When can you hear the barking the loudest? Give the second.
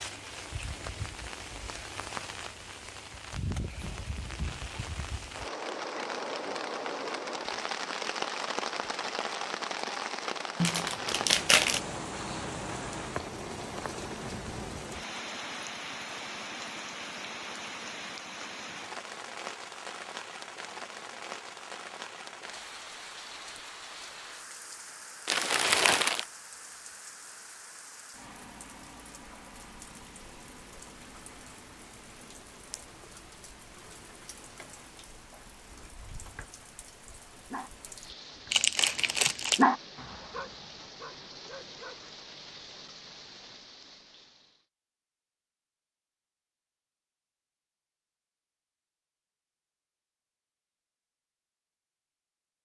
40 s.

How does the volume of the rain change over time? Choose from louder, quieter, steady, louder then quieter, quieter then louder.
quieter.